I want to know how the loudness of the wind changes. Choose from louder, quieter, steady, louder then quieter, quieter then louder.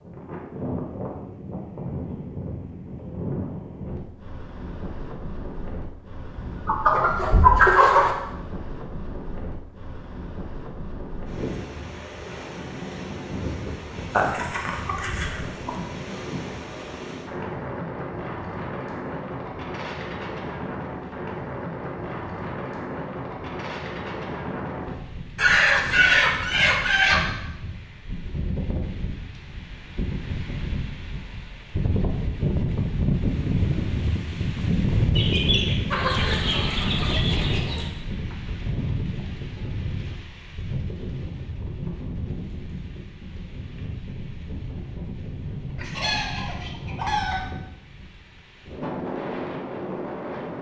louder then quieter.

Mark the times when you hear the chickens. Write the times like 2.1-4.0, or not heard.
6.3-8.1, 14.2-15.7, 25.4-27.2, 35.1-37.9, 45.8-47.5.